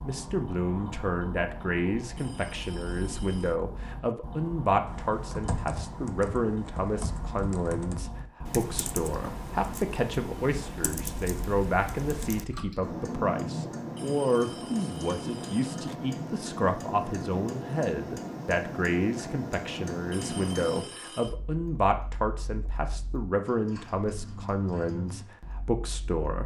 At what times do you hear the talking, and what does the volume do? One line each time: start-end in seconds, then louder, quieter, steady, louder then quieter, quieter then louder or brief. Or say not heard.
0.0-26.4 steady.